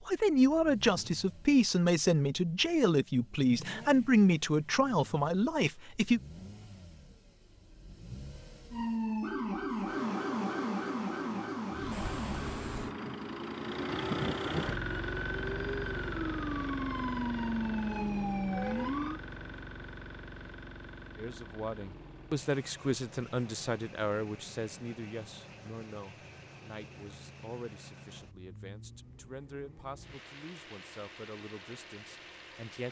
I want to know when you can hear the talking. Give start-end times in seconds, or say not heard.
0.1-6.2, 21.1-32.8.